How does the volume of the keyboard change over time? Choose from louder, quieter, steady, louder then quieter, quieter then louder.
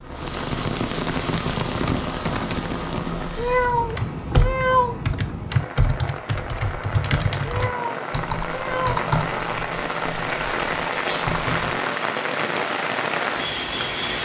louder then quieter.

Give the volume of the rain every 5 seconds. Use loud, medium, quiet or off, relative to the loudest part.
loud, medium, loud.